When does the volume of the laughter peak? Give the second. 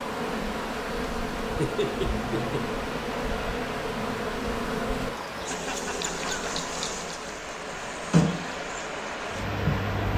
2 s.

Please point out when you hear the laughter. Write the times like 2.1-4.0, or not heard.
1.4-2.8, 5.3-6.5.